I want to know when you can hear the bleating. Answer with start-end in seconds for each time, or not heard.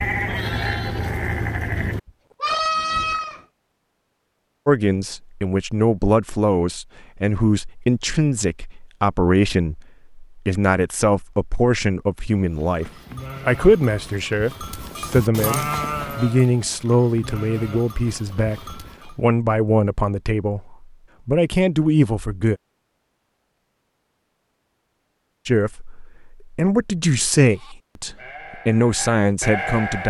0.0-3.4, 12.3-19.3, 27.4-30.0.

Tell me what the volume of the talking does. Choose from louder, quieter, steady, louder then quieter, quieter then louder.
steady.